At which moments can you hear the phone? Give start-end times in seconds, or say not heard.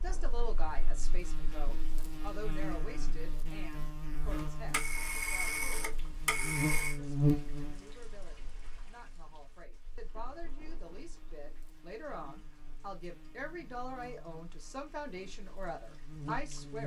4.2-7.0.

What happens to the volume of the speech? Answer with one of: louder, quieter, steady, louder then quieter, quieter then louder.
quieter then louder.